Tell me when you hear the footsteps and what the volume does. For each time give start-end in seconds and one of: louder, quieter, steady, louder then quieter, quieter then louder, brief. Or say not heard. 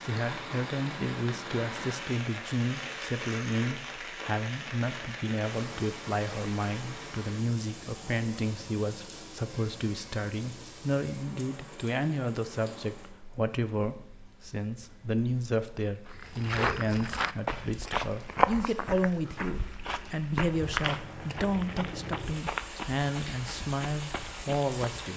16.1-25.1 quieter.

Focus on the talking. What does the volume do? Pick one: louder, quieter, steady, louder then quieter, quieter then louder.
steady.